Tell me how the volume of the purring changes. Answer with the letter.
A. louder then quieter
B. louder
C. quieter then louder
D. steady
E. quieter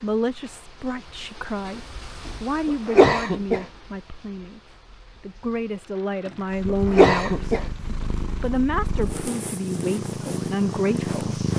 B.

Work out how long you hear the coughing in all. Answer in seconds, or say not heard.
2 s.